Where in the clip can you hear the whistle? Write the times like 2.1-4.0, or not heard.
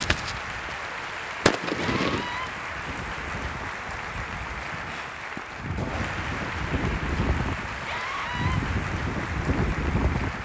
not heard.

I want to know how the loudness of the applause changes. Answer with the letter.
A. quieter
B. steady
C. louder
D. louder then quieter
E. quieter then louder
B.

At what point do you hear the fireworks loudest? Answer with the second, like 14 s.
2 s.